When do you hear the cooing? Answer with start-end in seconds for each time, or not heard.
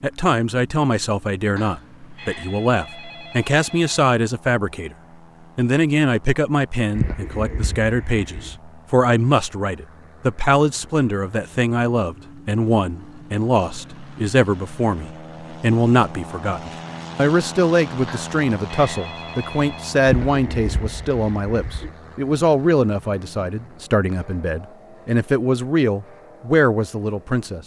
7.0-8.6, 20.1-21.9.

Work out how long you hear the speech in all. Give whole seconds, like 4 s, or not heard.
27 s.